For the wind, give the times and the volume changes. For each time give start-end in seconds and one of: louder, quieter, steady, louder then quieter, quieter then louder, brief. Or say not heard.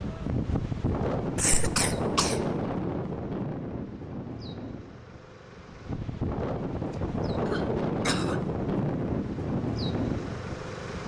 0.0-11.0 quieter then louder.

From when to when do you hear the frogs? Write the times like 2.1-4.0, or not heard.
not heard.